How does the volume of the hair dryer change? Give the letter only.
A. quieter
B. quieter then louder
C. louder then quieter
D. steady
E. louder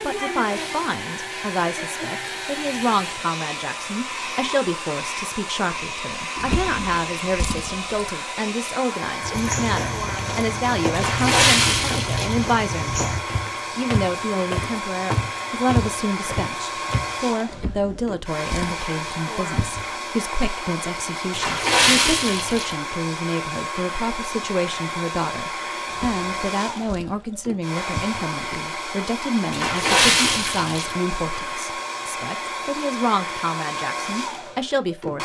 D.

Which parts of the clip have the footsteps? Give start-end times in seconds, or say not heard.
9.2-17.1.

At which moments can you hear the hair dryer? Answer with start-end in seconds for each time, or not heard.
0.0-35.1.